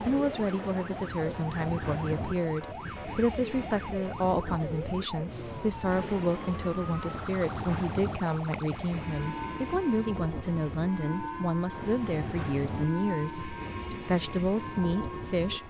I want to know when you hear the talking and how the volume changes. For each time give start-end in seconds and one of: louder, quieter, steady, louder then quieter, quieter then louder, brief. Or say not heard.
0.0-15.6 steady.